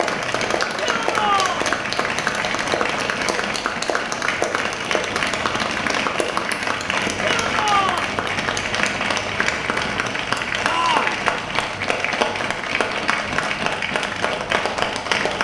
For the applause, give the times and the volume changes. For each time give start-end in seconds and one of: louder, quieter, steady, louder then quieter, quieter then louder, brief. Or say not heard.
0.0-15.3 steady.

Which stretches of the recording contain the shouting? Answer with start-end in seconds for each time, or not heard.
0.8-1.7, 7.2-8.1, 10.7-11.2.